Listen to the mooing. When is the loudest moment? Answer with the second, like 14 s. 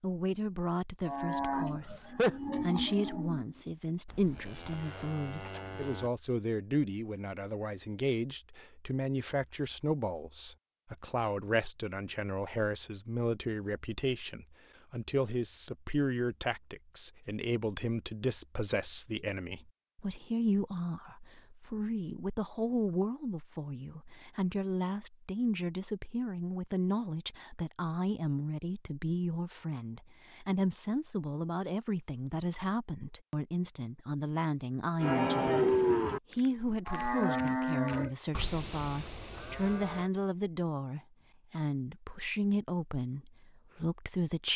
36 s.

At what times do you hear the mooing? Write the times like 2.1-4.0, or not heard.
1.0-6.1, 35.0-40.1.